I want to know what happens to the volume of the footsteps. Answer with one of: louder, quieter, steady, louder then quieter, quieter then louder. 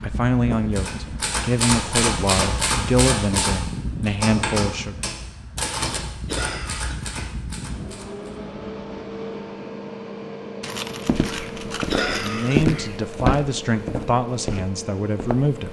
louder then quieter.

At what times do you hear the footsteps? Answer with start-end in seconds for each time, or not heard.
11.1-15.6.